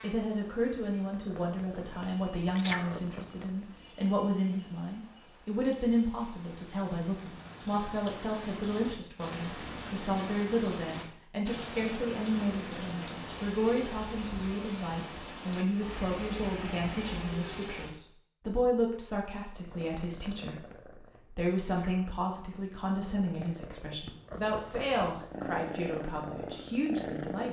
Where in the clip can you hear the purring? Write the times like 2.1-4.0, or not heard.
0.0-3.6, 19.5-27.4.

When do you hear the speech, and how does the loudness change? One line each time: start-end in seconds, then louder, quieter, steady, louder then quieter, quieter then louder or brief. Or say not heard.
0.0-27.4 steady.